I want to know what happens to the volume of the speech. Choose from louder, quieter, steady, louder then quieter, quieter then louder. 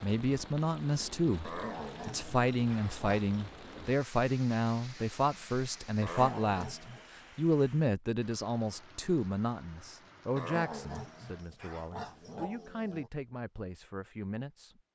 quieter.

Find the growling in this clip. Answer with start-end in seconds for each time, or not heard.
1.4-3.4, 6.0-7.1, 10.3-13.1.